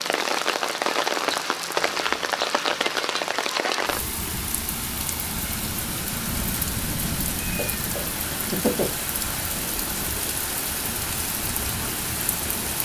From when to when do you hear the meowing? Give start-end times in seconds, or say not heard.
7.4-9.0.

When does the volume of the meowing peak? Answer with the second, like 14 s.
9 s.